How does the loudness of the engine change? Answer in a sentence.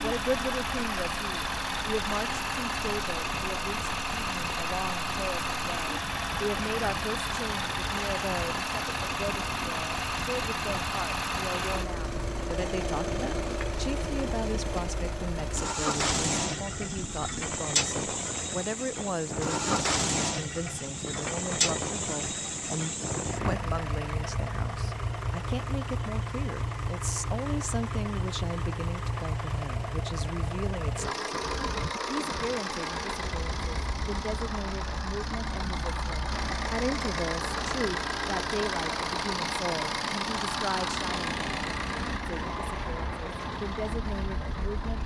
The volume of the engine stays about the same.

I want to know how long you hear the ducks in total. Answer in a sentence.
You can't hear the ducks here.